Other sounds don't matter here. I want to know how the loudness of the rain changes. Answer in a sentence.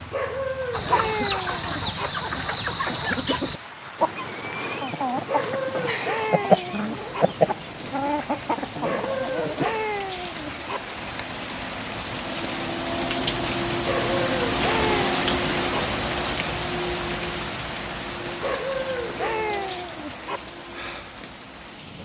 The volume of the rain goes up, then down.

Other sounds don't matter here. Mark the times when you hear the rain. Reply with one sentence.
The rain can be heard from 0.0 to 22.0 s.